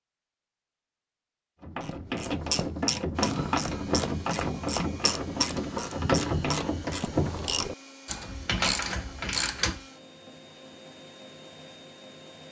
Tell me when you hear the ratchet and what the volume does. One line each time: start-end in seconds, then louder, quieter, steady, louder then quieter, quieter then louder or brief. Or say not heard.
1.6-9.8 steady.